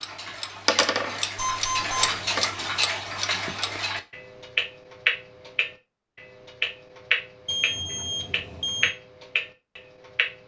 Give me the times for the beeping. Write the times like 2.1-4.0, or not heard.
1.4-2.1, 7.5-8.9.